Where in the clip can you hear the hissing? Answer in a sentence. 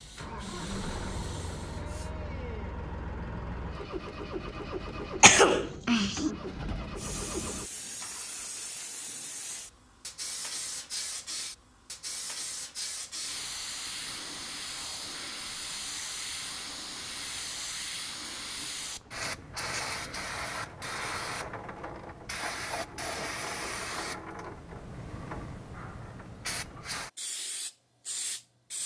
You can hear the hissing from 0.0 to 2.1 s and from 7.0 to 28.8 s.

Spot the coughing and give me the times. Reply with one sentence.
The coughing can be heard from 5.2 to 6.2 s.